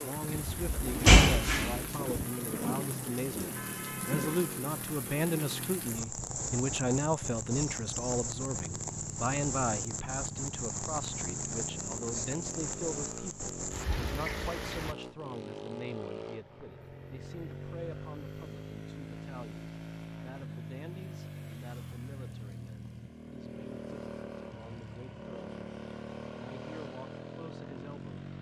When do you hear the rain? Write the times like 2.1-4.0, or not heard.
0.0-14.9.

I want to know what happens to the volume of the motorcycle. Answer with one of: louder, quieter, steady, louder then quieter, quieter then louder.
steady.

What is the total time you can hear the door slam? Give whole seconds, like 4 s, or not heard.
2 s.